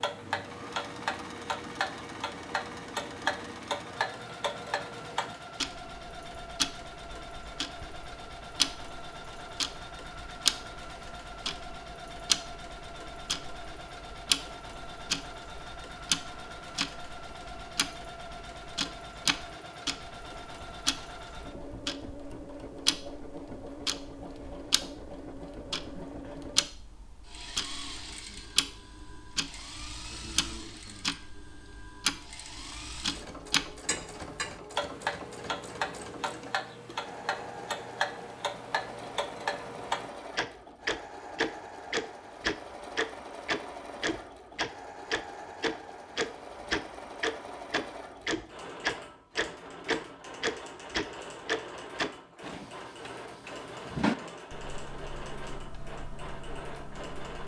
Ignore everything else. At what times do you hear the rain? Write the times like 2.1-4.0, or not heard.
not heard.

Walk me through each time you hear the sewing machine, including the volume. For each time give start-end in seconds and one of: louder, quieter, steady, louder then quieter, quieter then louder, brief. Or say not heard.
0.0-57.4 steady.